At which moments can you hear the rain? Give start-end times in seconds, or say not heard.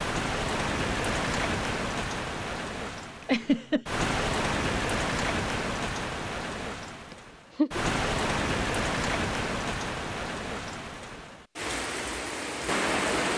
0.0-13.3.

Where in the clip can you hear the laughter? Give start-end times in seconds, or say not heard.
3.2-3.9, 7.1-7.8.